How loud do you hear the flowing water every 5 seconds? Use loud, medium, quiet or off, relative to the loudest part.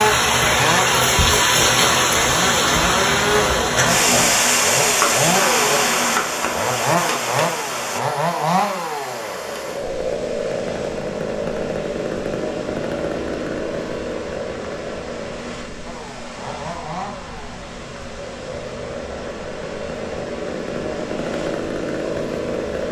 loud, medium, quiet, quiet, quiet.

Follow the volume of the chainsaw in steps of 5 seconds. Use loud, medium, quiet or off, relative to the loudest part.
loud, loud, loud, medium, loud.